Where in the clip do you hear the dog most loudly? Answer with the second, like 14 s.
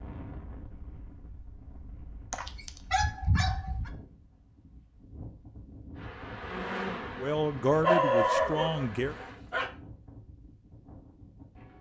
8 s.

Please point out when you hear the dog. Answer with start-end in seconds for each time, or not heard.
2.3-3.9, 7.8-9.7.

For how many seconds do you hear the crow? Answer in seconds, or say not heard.
not heard.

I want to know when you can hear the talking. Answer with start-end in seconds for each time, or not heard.
7.2-9.2.